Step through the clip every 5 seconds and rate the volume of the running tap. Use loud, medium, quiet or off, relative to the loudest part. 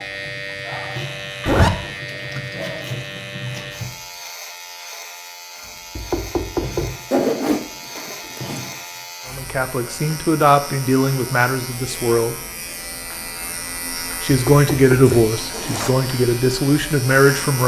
loud, loud, off, off.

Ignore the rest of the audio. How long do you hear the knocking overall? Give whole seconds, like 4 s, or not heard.
2 s.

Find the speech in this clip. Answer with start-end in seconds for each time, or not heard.
9.3-12.3, 14.2-17.6.